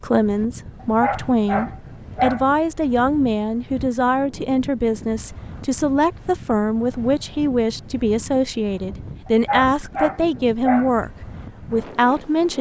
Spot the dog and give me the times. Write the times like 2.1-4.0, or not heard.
0.8-2.5, 9.2-10.9.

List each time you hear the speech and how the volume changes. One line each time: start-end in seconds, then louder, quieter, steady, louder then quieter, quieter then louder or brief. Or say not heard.
0.0-12.5 steady.